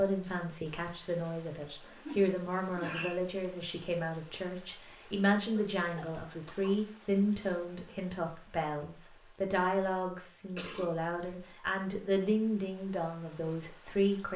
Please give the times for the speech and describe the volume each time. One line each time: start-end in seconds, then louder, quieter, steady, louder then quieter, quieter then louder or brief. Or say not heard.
0.0-14.3 steady.